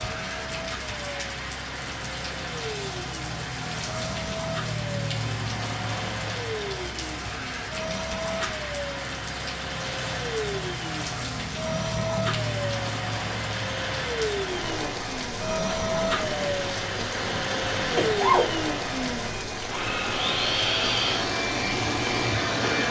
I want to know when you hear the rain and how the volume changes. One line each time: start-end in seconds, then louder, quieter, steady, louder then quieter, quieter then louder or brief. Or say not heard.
0.0-22.8 steady.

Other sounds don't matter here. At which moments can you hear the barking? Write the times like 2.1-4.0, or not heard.
not heard.